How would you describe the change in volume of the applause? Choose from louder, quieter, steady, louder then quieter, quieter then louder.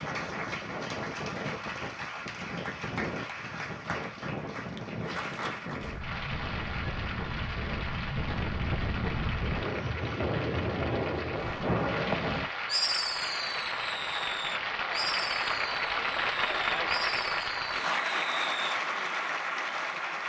louder.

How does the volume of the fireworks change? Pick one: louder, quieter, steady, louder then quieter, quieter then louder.
quieter.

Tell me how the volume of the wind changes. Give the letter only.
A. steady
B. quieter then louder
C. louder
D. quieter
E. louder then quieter
C.